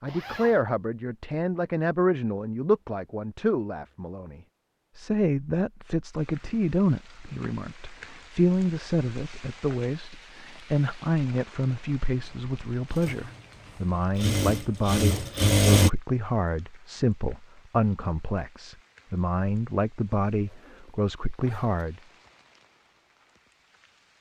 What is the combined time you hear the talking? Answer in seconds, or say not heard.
22 s.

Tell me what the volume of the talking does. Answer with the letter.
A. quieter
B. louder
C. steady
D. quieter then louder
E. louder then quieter
C.